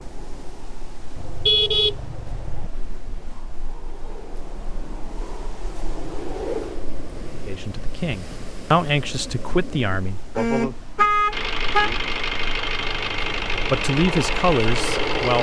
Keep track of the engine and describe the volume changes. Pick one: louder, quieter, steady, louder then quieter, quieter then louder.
steady.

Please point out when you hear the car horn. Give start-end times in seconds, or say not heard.
1.1-2.7, 10.3-12.2.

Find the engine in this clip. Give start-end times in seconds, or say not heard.
11.3-15.3.